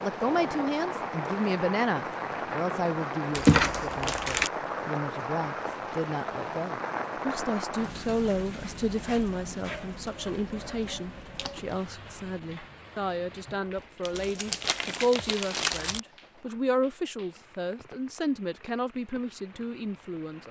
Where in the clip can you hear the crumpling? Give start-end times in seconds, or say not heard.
3.3-4.5, 11.3-11.8, 14.1-16.0.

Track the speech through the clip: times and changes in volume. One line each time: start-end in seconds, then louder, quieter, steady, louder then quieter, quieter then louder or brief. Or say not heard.
0.0-20.4 steady.